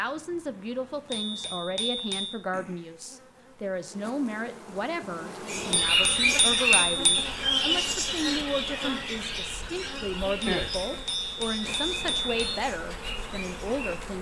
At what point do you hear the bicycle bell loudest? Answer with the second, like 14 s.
7 s.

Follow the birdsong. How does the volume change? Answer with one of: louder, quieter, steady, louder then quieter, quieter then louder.
quieter.